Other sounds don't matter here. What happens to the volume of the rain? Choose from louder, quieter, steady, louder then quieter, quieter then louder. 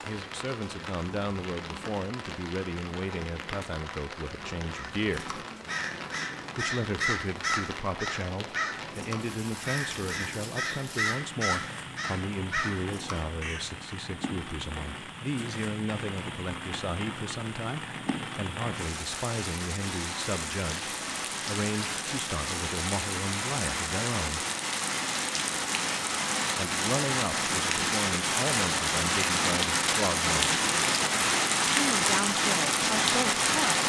louder.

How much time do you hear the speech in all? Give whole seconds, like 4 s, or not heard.
29 s.